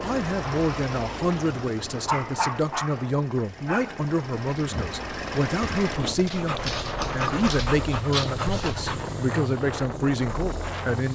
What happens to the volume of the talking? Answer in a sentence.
The volume of the talking stays about the same.